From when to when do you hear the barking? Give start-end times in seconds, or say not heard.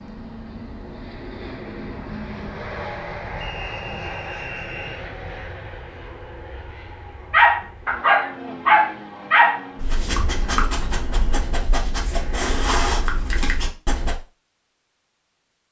7.3-14.2.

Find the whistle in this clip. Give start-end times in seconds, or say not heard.
3.4-5.0.